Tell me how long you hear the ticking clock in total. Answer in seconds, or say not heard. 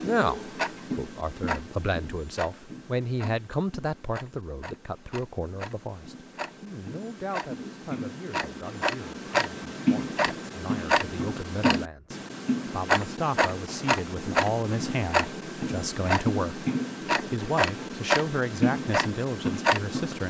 20 s.